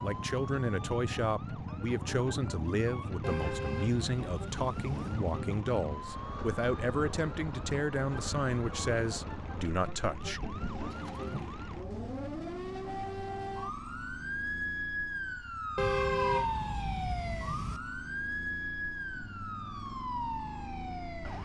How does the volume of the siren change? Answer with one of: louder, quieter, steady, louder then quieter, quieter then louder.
louder.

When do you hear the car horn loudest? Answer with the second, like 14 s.
16 s.